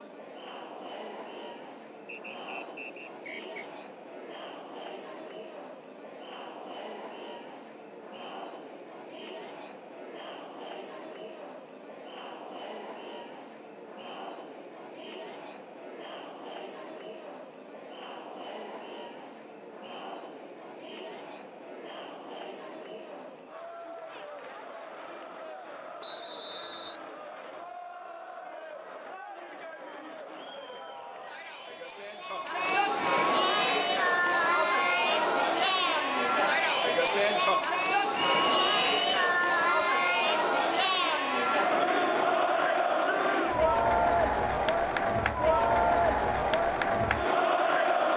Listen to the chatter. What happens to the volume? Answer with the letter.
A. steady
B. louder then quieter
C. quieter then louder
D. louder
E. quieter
D.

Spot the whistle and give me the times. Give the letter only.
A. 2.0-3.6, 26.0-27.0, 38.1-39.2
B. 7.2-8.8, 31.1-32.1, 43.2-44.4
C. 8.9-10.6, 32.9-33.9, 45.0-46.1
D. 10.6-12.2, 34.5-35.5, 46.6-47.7
A.